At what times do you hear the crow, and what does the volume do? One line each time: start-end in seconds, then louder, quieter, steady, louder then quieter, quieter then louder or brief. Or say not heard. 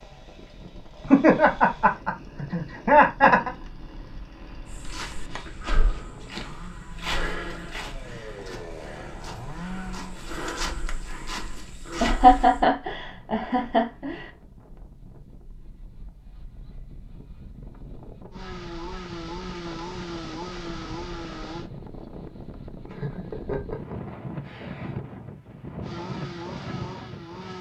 not heard.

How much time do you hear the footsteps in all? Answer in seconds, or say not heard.
8 s.